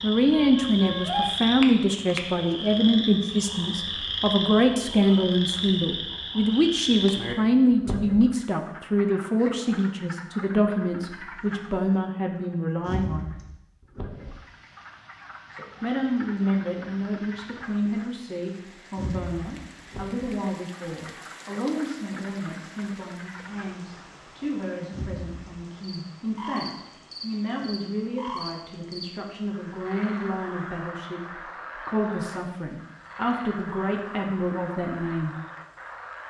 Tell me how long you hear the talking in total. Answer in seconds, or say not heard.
33 s.